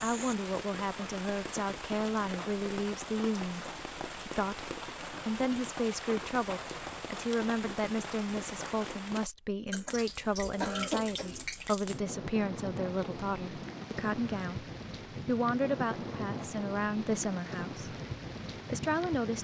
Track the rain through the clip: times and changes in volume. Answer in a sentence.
The rain can be heard from 0.0 to 19.4 s, at a steady volume.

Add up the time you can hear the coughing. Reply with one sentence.
You can hear the coughing for 2 seconds altogether.